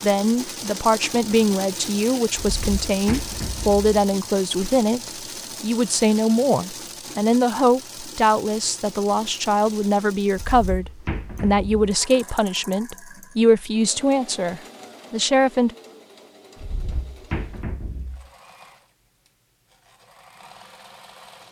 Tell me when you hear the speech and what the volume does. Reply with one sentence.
The speech can be heard from 0.0 to 15.8 s, at a steady volume.